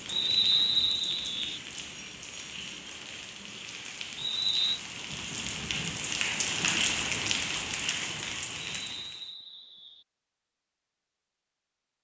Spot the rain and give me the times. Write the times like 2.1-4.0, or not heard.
0.0-9.3.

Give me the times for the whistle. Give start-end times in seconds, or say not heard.
0.1-1.6, 4.2-4.8, 8.8-10.1.